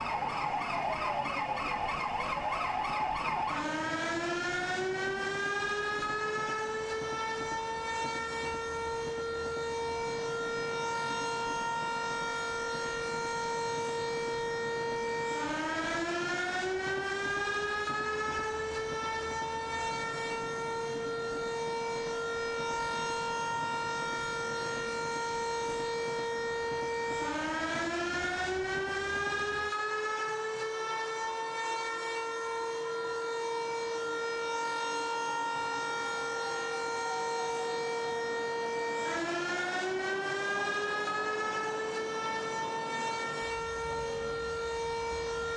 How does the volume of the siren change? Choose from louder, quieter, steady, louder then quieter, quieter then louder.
steady.